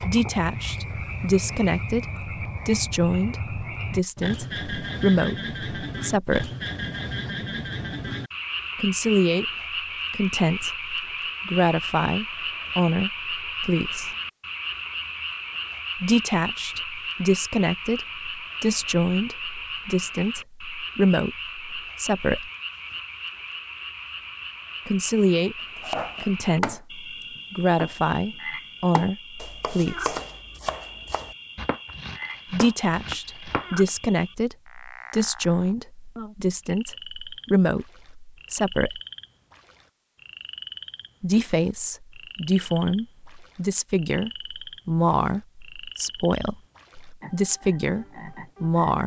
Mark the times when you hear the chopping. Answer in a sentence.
The chopping can be heard from 25.8 to 27.9 s and from 28.9 to 33.9 s.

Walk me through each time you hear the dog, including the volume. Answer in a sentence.
The dog can't be heard in this clip.